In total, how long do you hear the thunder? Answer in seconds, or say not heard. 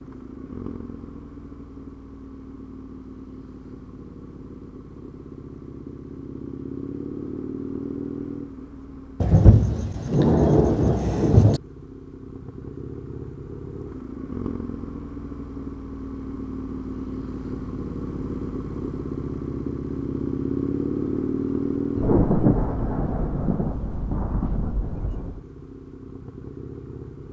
6 s.